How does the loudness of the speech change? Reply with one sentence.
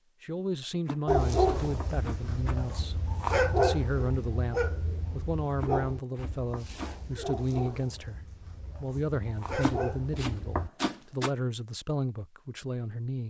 The volume of the speech stays about the same.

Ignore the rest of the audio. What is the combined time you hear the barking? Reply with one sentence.
You can hear the barking for 10 seconds altogether.